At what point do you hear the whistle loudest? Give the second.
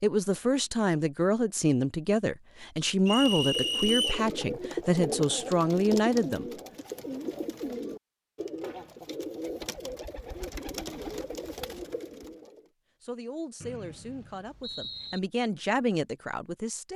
4 s.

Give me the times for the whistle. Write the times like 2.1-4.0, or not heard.
3.0-4.2, 13.6-15.2.